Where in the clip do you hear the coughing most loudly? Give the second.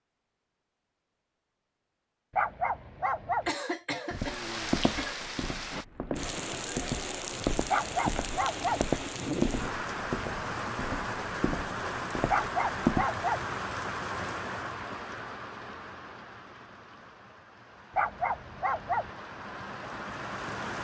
4 s.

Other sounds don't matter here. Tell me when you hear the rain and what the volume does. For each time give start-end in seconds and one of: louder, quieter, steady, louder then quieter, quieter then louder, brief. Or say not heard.
4.0-20.7 quieter.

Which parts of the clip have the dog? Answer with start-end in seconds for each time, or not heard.
2.3-3.5, 7.7-8.8, 12.2-13.4, 17.9-19.1.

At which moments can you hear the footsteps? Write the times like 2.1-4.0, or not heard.
4.1-13.1.